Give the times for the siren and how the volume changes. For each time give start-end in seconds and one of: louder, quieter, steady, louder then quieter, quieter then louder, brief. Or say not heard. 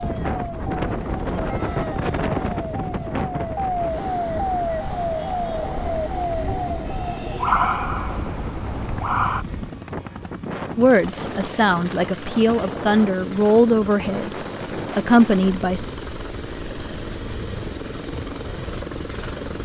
0.0-9.4 louder.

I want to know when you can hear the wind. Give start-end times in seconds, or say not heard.
0.0-19.6.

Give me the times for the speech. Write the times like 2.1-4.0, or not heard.
10.8-14.3, 14.9-15.8.